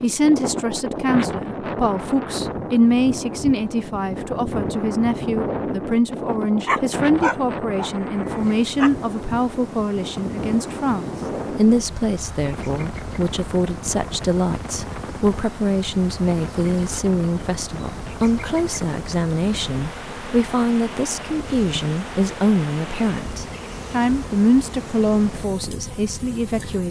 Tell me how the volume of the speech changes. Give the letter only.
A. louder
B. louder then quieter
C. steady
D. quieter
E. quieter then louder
C.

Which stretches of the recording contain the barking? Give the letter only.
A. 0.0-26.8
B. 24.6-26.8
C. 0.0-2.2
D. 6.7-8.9
D.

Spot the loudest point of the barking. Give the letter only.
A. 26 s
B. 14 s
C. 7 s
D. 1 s
C.